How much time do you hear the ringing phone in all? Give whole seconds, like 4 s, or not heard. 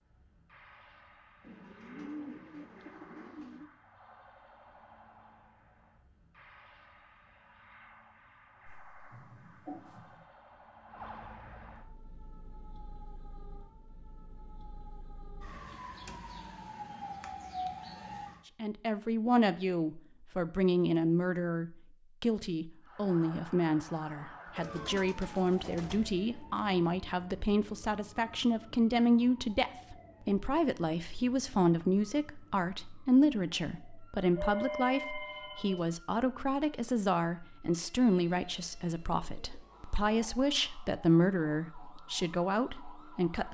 3 s.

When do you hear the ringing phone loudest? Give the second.
35 s.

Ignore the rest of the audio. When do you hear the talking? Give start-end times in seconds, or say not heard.
18.6-43.4.